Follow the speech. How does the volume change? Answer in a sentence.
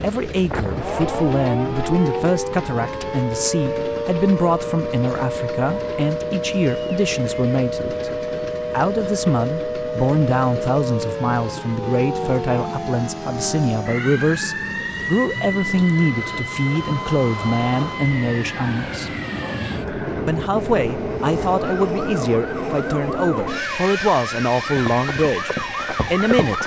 The loudness of the speech stays about the same.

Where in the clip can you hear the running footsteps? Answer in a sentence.
You can hear the running footsteps from 24.6 to 26.6 s.